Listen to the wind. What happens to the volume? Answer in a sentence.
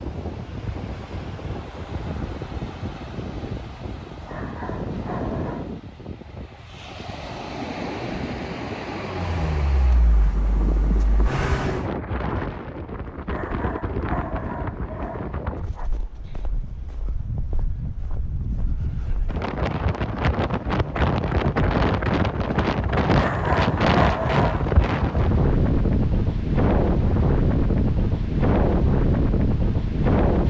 The volume of the wind goes up.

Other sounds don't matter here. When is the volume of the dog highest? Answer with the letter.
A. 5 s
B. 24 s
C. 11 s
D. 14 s
B.